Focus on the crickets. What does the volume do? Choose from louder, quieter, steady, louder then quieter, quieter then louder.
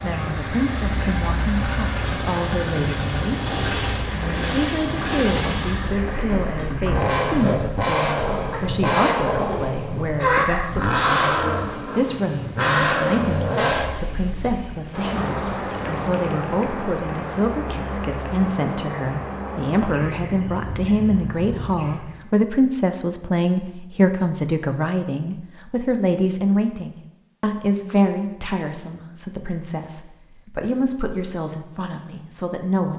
louder then quieter.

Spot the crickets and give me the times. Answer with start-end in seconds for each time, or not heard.
0.0-22.2.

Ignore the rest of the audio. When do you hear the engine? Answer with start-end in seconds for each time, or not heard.
0.0-14.7.